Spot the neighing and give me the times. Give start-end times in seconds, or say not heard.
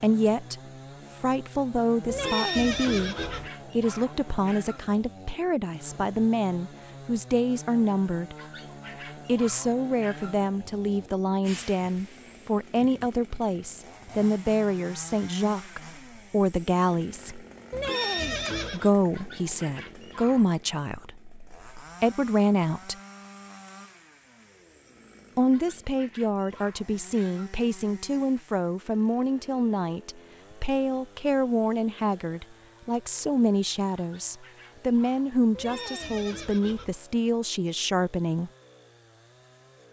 2.0-3.5, 17.7-18.9, 35.5-37.0.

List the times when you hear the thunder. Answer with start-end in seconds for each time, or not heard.
not heard.